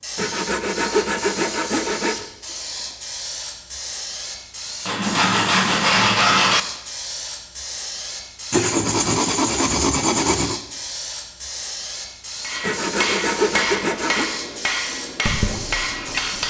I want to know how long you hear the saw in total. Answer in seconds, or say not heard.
8 s.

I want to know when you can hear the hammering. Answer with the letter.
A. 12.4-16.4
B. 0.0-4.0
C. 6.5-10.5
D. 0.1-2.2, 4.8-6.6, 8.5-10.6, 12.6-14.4
A.